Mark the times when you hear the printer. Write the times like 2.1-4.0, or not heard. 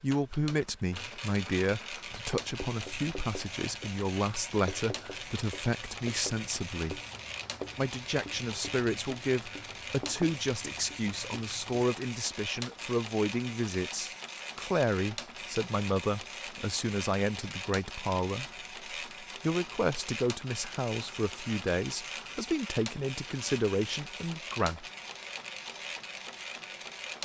0.0-27.1.